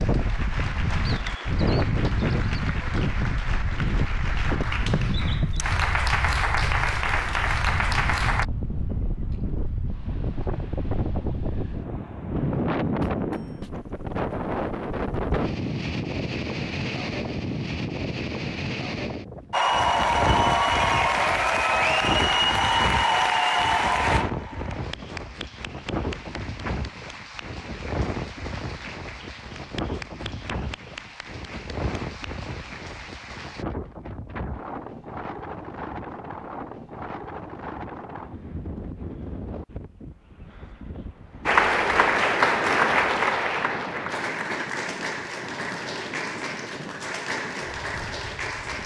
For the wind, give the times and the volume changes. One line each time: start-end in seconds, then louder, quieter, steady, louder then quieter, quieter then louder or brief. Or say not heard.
0.0-48.8 quieter.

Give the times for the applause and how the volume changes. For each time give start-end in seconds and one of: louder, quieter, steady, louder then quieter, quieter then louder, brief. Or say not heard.
0.0-8.4 louder
19.5-33.6 quieter
41.5-48.8 quieter.